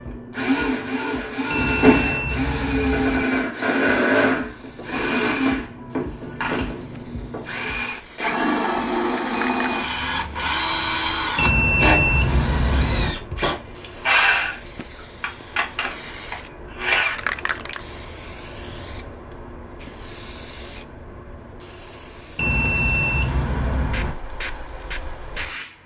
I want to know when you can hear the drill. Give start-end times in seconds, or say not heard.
0.0-17.2.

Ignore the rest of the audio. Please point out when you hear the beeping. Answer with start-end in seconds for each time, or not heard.
1.5-3.2, 11.3-13.2, 22.4-24.1.